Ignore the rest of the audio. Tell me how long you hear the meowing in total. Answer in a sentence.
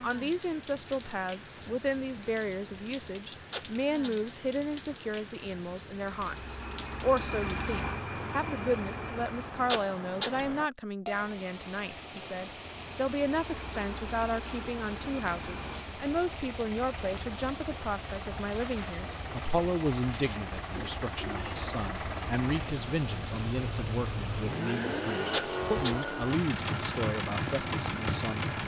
The meowing can be heard for 2 seconds in total.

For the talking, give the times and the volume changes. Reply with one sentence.
You can hear the talking from 0.0 to 28.6 s, at a steady volume.